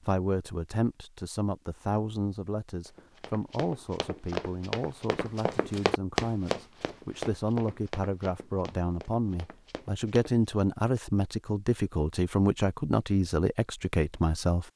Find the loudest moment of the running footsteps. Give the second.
6 s.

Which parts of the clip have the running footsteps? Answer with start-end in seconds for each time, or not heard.
2.9-10.6.